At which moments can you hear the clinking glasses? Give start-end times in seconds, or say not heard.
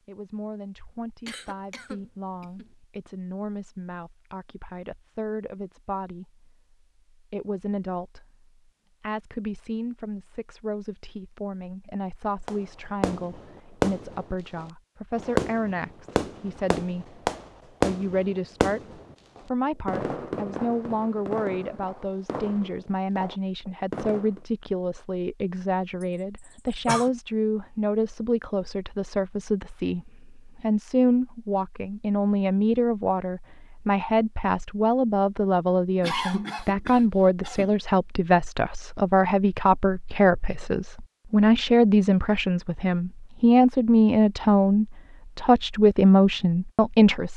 not heard.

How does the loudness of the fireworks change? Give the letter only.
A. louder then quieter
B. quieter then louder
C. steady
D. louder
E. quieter
E.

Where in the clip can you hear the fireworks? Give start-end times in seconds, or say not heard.
12.4-24.4.